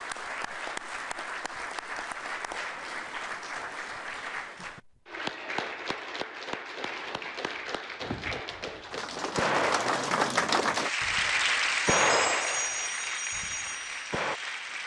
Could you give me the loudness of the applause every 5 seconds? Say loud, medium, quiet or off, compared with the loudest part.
medium, medium, loud.